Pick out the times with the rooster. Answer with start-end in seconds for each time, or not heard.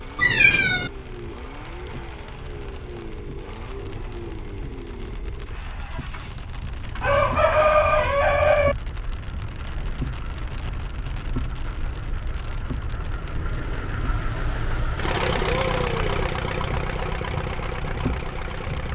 7.0-8.8.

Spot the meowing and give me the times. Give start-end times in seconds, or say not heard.
0.1-0.9.